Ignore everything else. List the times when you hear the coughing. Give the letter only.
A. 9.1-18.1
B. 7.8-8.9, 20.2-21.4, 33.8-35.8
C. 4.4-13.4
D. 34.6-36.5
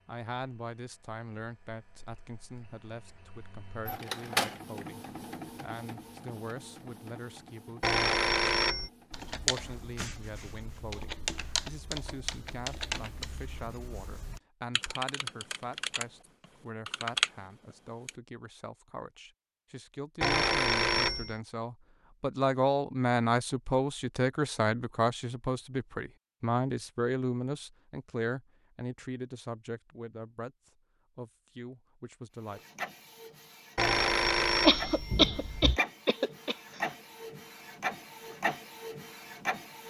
D.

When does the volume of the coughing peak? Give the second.
35 s.